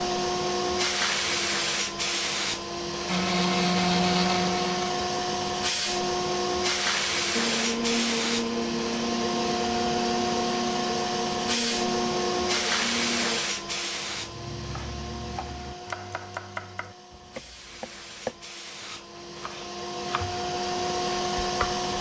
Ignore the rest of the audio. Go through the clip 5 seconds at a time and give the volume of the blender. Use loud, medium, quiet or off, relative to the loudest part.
loud, loud, medium, off, off.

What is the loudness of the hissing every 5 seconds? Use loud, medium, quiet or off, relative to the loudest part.
loud, loud, loud, quiet, loud.